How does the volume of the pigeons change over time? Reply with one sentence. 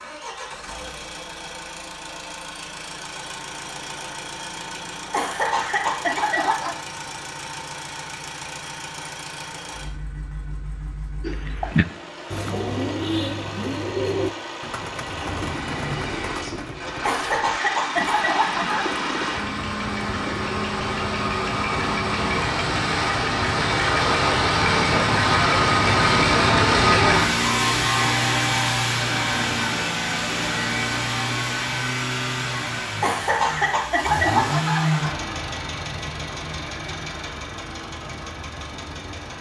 The loudness of the pigeons goes down.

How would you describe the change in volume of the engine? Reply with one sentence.
The loudness of the engine goes up, then down.